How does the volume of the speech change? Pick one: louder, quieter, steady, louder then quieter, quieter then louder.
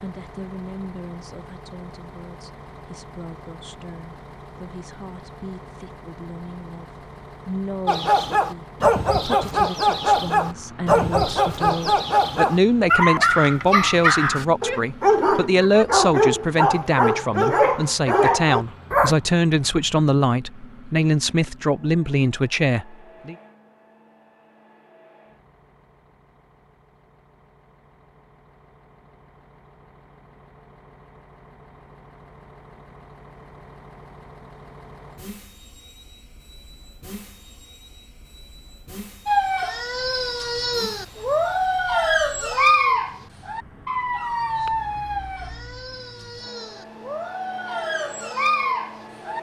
louder.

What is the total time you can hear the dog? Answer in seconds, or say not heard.
21 s.